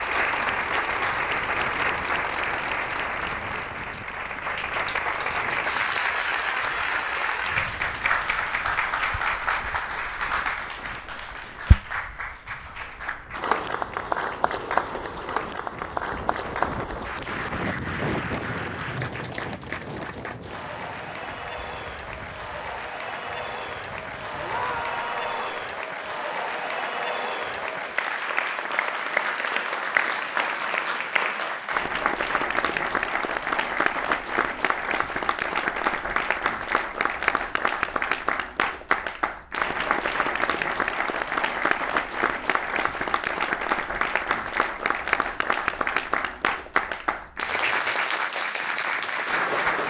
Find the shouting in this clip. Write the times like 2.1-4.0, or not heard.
24.4-25.4.